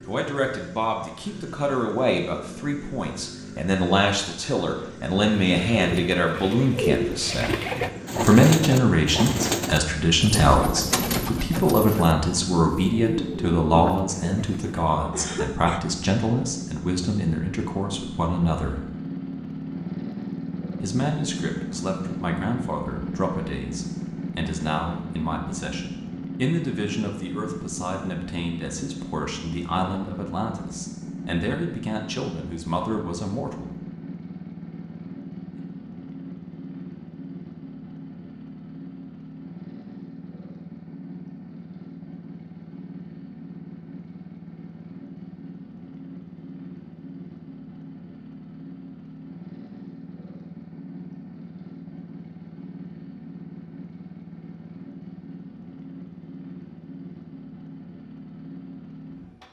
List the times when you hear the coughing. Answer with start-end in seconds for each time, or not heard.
15.1-15.8.